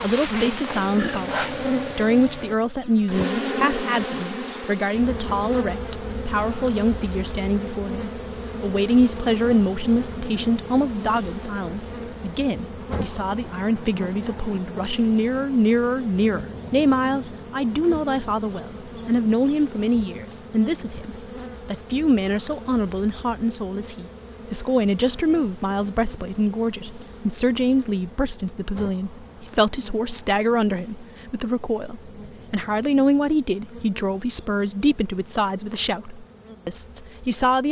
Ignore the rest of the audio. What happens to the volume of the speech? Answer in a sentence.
The loudness of the speech stays about the same.